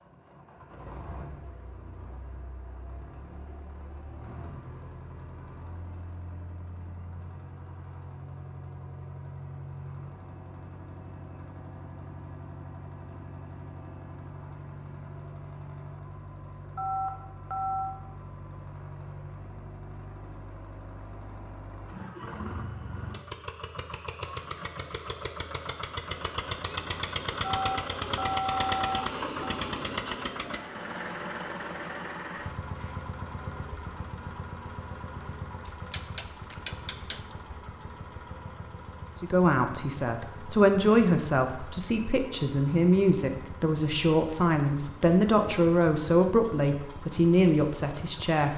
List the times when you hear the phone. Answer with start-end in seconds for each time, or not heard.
16.8-17.9, 27.4-29.6.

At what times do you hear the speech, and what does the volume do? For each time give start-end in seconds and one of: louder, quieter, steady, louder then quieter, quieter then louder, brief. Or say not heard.
39.2-48.5 steady.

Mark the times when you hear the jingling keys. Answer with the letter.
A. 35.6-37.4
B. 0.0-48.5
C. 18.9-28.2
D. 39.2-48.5
A.